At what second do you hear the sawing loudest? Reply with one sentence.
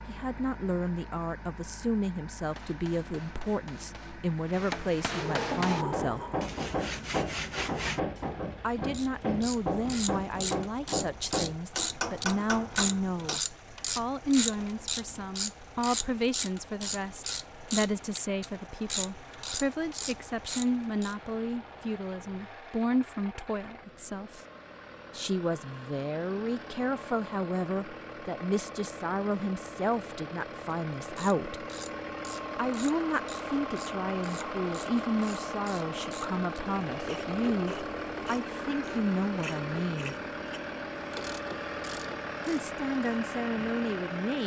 The loudest moment of the sawing is at 8 seconds.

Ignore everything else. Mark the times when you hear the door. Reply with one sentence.
The door can be heard from 5.1 to 6.5 s.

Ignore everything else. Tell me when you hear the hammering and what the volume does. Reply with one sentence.
The hammering can be heard from 2.5 to 13.4 s, getting louder.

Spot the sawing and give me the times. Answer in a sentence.
You can hear the sawing from 6.3 to 8.0 s.